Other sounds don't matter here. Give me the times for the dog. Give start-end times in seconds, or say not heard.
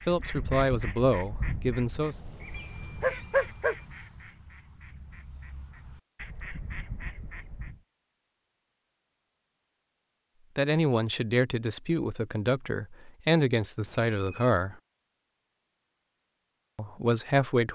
2.4-3.8.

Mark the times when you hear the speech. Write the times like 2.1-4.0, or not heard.
0.1-2.1, 10.6-14.8, 16.8-17.7.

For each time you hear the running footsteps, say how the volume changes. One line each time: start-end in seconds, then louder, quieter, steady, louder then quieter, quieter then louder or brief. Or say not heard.
not heard.